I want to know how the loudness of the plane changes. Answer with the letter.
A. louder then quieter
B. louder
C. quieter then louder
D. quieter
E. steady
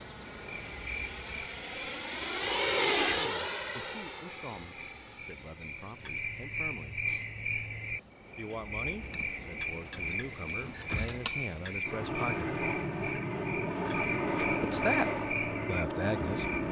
C.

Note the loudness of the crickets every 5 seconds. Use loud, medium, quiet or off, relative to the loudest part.
medium, loud, loud, loud.